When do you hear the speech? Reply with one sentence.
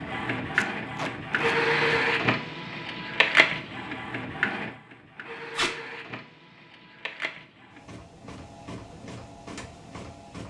The speech can't be heard in this clip.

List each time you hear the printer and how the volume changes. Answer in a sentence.
The printer can be heard from 0.0 to 10.4 s, getting quieter.